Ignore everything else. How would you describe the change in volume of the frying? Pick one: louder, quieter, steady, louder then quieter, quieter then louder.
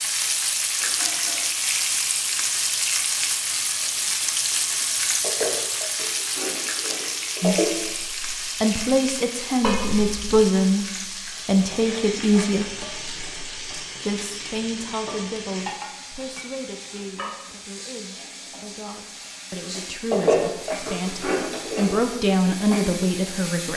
quieter.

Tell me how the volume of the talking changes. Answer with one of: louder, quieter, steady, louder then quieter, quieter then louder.
quieter then louder.